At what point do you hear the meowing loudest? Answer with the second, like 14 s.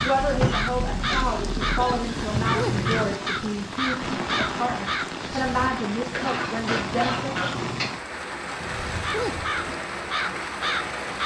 3 s.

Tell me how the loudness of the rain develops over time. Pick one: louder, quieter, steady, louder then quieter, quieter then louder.
steady.